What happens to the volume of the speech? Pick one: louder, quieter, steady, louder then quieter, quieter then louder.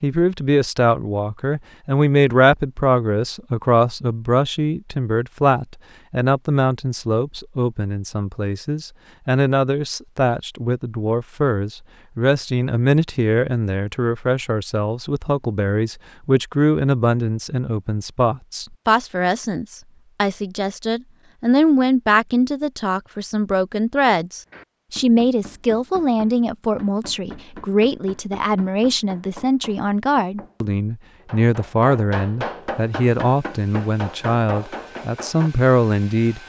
steady.